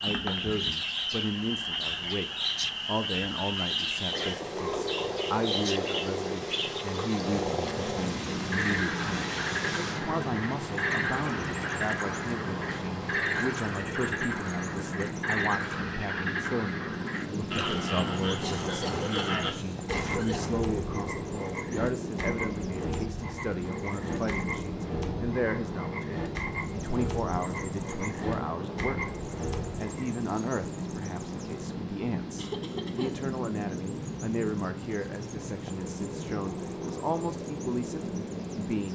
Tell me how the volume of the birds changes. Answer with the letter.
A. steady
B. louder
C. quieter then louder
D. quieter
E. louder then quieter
A.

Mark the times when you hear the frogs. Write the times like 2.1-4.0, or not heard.
0.0-30.1.